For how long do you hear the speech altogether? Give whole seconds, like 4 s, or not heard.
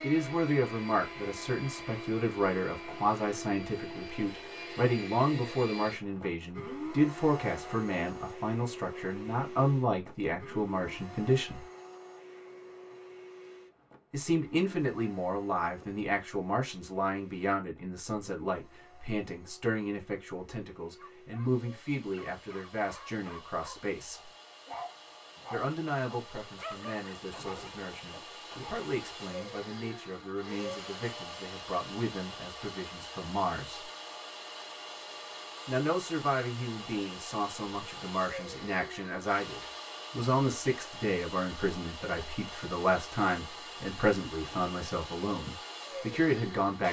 41 s.